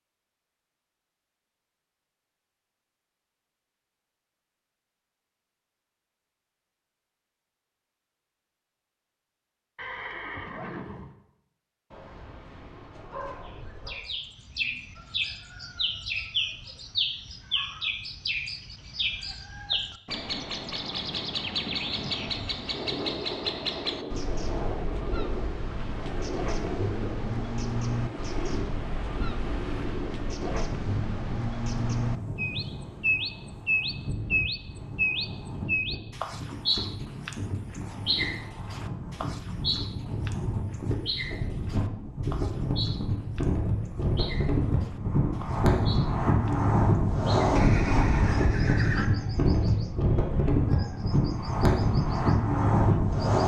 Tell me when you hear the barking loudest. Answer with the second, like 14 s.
13 s.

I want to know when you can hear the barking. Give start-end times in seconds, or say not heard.
11.9-13.9.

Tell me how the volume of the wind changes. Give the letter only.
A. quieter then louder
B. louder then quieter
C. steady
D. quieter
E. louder
E.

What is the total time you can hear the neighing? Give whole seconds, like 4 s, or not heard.
3 s.